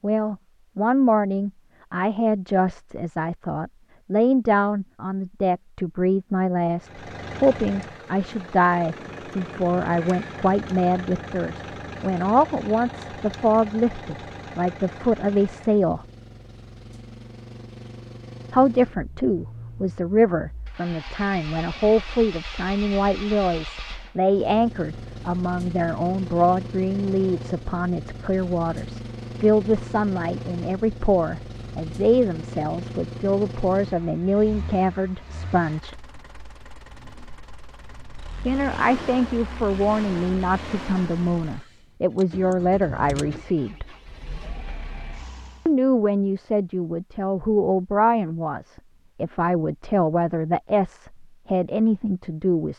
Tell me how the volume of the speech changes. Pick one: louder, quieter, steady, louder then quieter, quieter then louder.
steady.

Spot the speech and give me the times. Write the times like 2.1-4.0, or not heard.
0.0-16.0, 18.5-36.0, 38.5-43.9, 45.6-52.7.